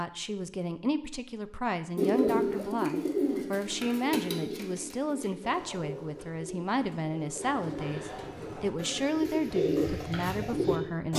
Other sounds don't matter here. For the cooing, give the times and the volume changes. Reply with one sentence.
The cooing can be heard from 1.9 to 11.1 s, getting quieter then louder.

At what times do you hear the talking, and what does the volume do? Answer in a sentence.
You can hear the talking from 0.0 to 11.1 s, at a steady volume.